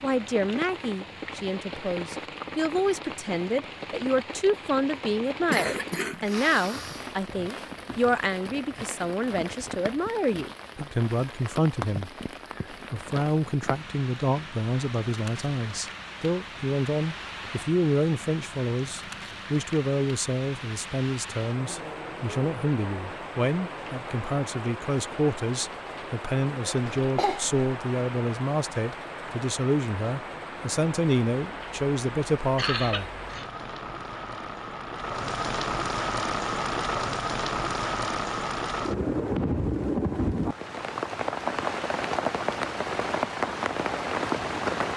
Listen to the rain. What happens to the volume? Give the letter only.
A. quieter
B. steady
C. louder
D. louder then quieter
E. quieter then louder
C.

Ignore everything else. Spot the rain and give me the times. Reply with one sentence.
The rain can be heard from 0.0 to 44.9 s.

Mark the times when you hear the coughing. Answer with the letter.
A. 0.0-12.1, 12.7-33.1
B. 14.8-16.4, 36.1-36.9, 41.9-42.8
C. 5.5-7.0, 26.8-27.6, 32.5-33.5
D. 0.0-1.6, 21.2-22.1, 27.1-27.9
C.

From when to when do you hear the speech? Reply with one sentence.
The speech can be heard from 0.0 to 12.1 s and from 12.7 to 33.1 s.